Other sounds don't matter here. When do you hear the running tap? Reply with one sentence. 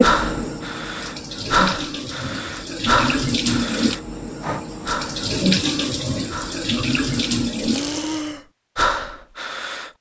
You can hear the running tap from 0.0 to 8.3 s.